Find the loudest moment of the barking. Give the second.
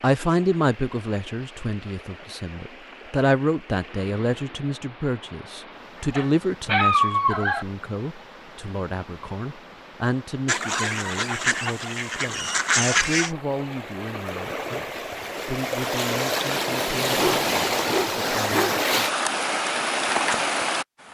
7 s.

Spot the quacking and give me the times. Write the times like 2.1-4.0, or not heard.
10.4-13.3.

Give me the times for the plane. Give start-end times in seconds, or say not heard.
not heard.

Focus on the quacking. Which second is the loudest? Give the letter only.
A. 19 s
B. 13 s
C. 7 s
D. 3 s
B.